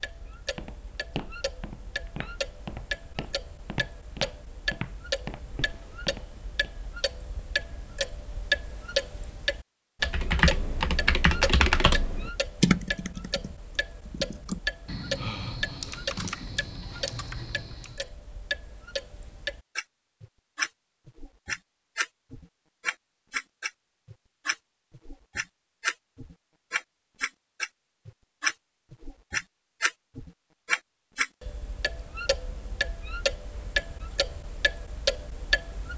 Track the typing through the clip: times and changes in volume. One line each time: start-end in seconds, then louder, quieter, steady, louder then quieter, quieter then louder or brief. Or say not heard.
10.0-18.1 quieter.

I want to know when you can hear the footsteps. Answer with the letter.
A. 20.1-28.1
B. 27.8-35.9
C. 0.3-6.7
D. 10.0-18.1
C.